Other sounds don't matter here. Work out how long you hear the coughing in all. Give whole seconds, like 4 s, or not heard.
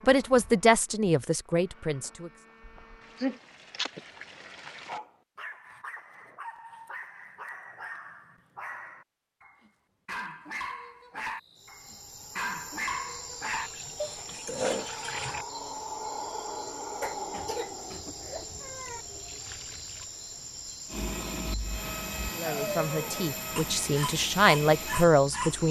3 s.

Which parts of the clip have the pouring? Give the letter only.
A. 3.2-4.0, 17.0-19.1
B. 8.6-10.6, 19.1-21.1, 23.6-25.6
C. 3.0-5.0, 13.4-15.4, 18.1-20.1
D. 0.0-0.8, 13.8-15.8
C.